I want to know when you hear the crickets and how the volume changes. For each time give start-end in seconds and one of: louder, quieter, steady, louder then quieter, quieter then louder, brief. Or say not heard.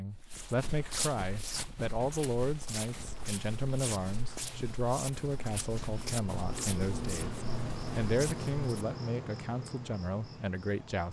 2.9-11.0 louder then quieter.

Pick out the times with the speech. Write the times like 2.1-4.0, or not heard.
0.0-11.0.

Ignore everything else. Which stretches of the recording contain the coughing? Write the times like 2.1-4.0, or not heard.
not heard.